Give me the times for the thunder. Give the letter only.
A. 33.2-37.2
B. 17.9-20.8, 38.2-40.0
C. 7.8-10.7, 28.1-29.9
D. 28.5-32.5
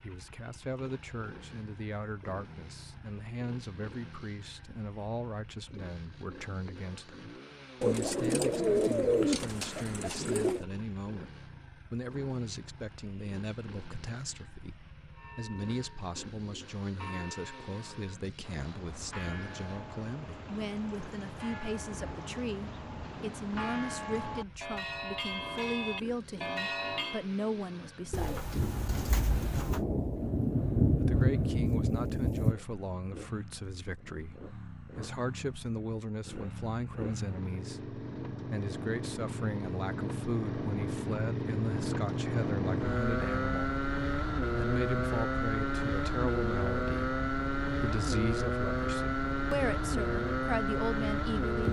D.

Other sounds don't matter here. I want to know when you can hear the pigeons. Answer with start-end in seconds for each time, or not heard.
7.8-10.7, 28.1-29.9.